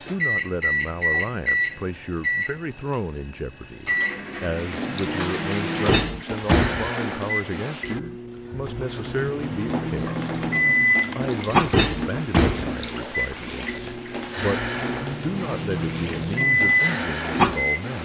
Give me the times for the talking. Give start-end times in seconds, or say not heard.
0.1-10.2, 11.2-14.6, 15.2-17.9.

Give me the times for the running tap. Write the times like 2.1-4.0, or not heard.
4.5-17.9.